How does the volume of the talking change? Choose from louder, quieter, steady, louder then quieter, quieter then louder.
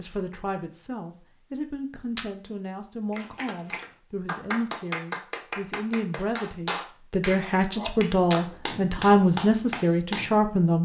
louder.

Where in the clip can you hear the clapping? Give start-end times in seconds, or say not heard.
3.1-10.4.